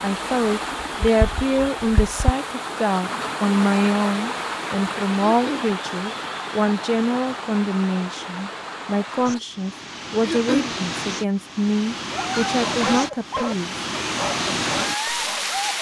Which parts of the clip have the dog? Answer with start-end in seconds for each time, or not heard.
12.1-15.7.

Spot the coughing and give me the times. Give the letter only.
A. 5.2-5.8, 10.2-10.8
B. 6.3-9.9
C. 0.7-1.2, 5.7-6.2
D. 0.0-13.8
A.